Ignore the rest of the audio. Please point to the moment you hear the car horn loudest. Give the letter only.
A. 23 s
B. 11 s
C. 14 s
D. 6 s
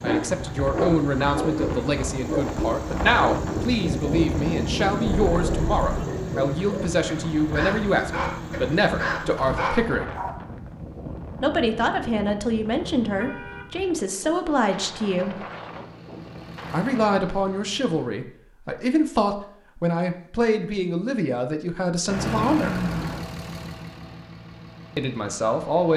A.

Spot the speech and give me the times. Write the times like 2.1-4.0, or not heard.
0.0-10.2, 11.4-15.3, 16.7-22.9, 24.9-25.9.